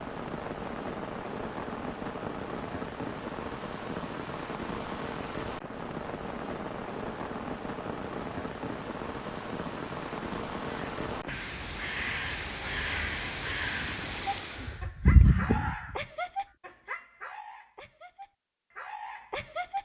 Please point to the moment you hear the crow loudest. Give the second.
15 s.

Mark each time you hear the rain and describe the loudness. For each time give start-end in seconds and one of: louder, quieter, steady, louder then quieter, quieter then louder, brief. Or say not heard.
0.0-14.8 steady.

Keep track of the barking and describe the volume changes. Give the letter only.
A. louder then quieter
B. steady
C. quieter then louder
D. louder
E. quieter
C.